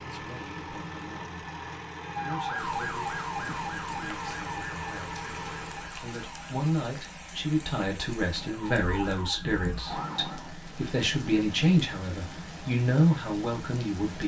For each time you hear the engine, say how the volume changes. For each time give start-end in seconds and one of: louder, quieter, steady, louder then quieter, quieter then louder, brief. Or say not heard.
0.0-6.1 steady.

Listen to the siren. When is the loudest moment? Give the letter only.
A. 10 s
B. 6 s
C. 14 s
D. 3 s
D.